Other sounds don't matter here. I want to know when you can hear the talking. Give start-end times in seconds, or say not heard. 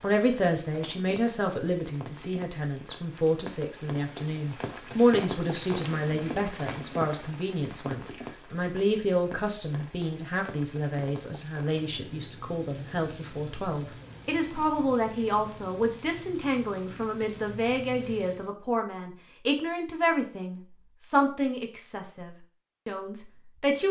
0.0-23.8.